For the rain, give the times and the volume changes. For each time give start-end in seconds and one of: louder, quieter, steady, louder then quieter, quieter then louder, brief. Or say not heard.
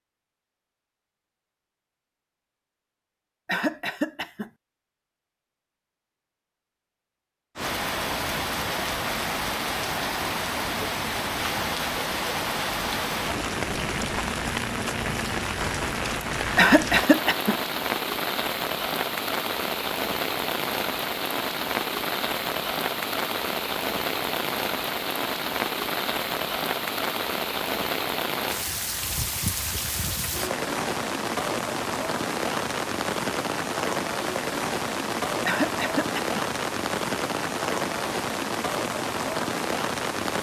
7.5-40.3 steady.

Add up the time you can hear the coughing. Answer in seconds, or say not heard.
3 s.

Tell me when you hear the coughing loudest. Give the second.
17 s.